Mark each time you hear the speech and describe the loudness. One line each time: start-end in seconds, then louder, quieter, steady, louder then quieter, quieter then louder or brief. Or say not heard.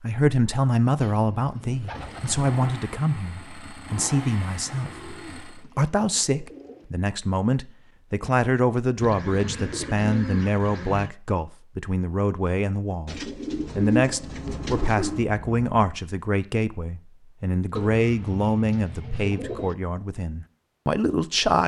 0.0-21.6 steady.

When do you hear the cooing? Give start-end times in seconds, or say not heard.
0.9-2.5, 4.7-6.9, 9.0-11.1, 13.1-15.2, 17.8-19.8.